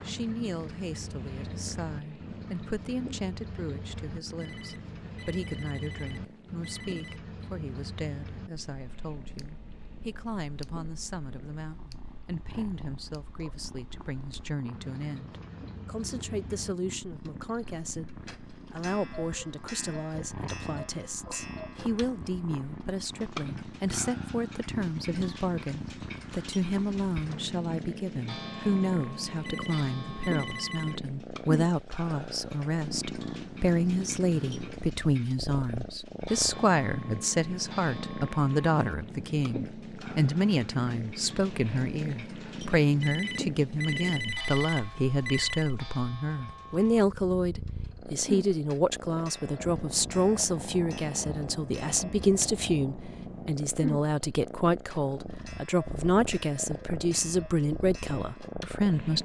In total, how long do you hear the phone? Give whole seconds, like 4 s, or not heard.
7 s.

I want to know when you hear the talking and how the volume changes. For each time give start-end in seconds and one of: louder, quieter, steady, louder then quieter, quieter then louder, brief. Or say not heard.
0.1-59.1 louder.